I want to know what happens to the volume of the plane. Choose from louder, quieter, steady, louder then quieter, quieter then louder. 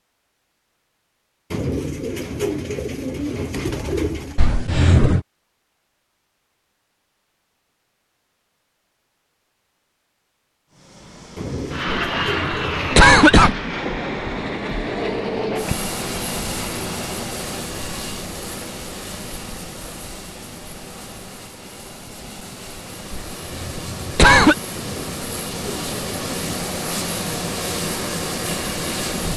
quieter then louder.